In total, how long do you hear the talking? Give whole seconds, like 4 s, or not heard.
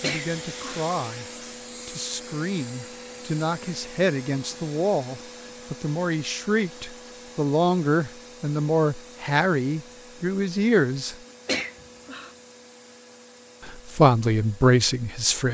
12 s.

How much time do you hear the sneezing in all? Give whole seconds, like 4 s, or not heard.
2 s.